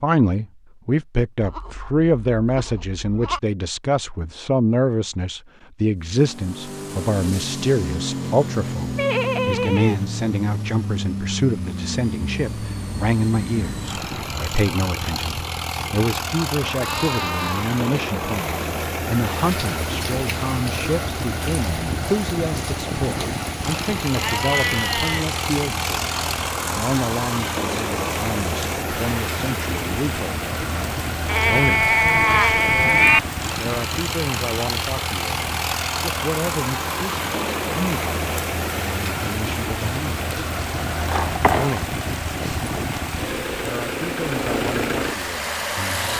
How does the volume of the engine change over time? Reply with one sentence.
The volume of the engine stays about the same.